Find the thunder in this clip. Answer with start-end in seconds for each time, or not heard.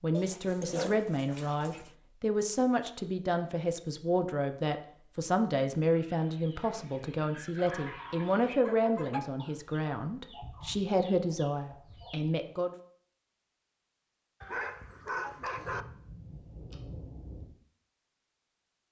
15.4-17.4.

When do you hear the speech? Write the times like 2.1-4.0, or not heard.
0.0-12.7.